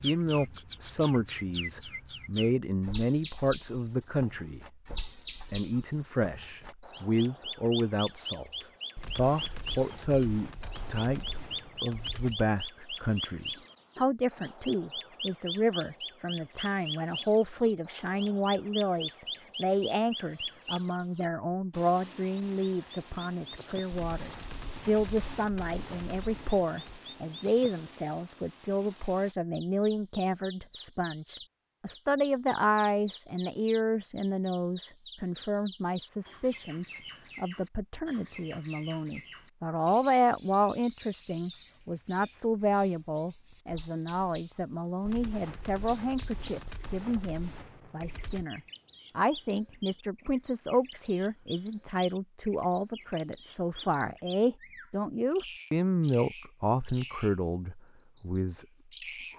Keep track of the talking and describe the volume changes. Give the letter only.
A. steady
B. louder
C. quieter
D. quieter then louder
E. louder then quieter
A.